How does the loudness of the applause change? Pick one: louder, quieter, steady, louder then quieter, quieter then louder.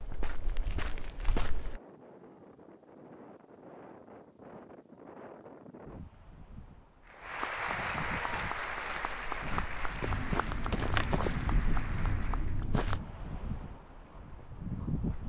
quieter.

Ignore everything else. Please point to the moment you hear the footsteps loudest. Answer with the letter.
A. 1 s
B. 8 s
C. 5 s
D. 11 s
D.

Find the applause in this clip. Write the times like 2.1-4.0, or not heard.
7.0-12.7.